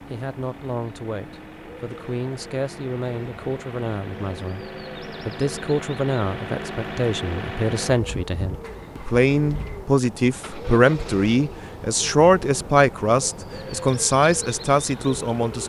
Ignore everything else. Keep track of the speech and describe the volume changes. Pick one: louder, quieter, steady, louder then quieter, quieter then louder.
louder.